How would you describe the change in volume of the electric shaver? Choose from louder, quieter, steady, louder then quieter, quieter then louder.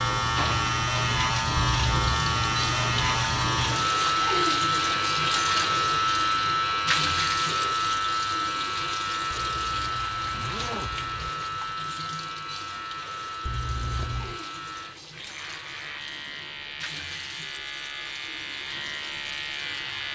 quieter.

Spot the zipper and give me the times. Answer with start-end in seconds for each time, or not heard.
1.6-2.0, 9.3-11.3, 13.4-14.4.